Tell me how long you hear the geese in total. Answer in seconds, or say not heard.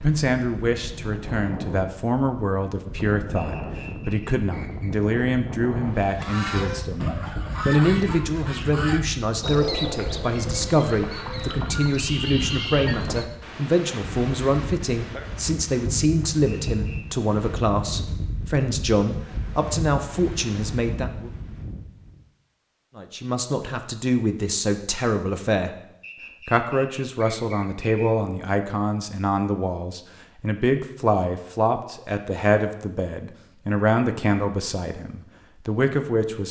7 s.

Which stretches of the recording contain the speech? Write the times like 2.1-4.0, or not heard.
0.0-21.3, 22.9-25.8, 26.4-36.4.